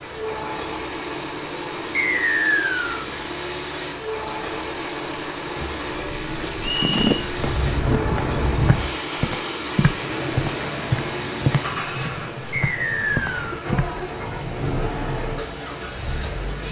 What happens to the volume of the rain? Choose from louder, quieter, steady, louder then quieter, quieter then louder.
louder then quieter.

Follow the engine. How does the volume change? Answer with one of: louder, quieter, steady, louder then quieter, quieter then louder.
steady.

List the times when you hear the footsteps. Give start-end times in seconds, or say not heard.
6.5-13.8.